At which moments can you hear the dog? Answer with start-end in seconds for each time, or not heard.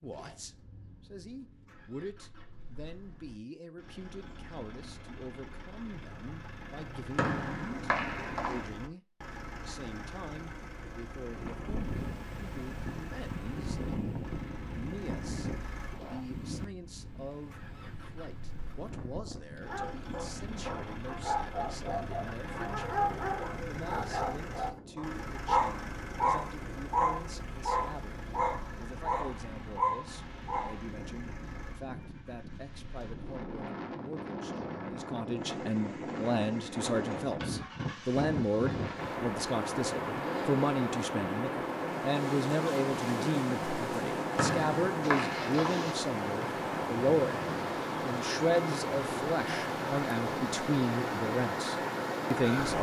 19.6-30.8.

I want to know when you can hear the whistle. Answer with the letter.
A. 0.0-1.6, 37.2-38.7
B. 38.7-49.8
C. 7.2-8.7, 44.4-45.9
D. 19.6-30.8
C.